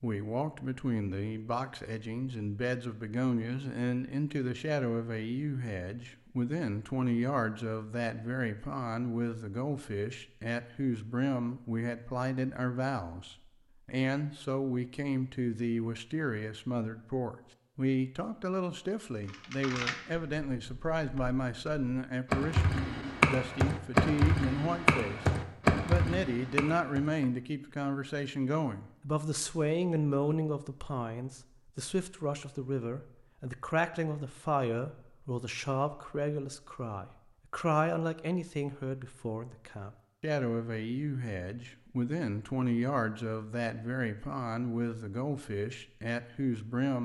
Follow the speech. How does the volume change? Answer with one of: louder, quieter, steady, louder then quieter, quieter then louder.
steady.